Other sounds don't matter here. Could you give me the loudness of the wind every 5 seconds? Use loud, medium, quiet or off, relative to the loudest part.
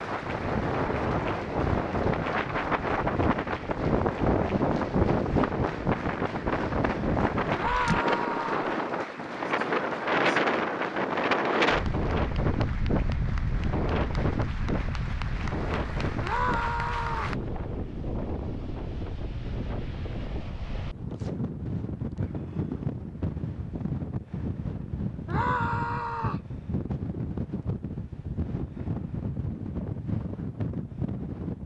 loud, loud, loud, medium, medium, medium, medium.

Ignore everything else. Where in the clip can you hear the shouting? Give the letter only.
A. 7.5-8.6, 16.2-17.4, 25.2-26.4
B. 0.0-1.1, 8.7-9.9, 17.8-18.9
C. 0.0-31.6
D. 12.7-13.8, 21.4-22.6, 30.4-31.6
A.